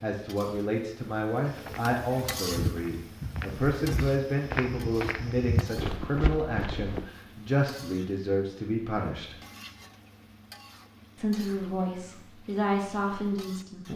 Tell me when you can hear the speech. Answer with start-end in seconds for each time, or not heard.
0.0-9.3, 11.2-13.9.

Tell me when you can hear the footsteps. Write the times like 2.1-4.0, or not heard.
1.5-7.0.